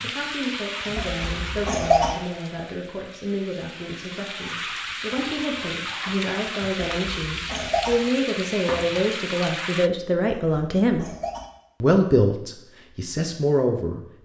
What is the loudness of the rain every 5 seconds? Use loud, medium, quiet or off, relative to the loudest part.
loud, loud, off.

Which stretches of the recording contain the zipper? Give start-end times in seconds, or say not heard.
not heard.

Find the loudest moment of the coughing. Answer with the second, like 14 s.
2 s.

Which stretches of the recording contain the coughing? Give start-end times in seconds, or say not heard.
0.9-2.1, 6.9-8.0, 10.2-11.4.